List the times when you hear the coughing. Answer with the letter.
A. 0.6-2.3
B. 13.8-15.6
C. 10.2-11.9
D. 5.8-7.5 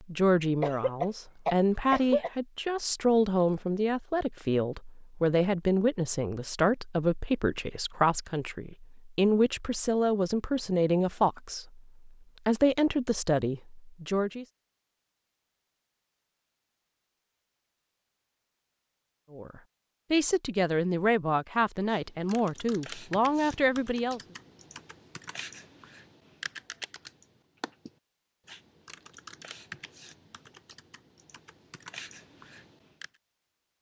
A.